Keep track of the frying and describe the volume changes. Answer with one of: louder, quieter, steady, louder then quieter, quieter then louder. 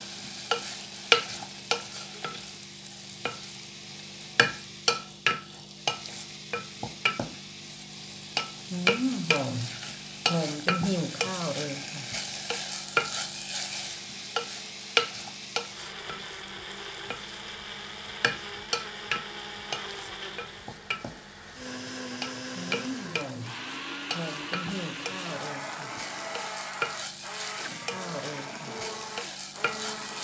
quieter.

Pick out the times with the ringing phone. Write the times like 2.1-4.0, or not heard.
not heard.